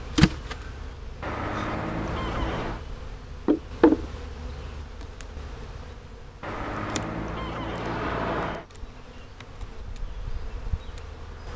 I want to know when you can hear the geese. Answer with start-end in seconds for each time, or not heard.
1.2-2.9, 6.4-8.7.